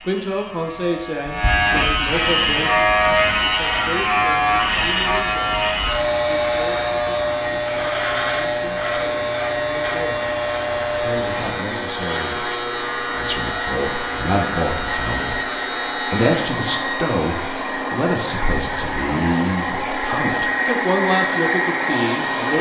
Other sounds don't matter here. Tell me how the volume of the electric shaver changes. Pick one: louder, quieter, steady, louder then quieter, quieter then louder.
quieter.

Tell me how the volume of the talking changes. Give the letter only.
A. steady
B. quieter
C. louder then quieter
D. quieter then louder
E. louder
D.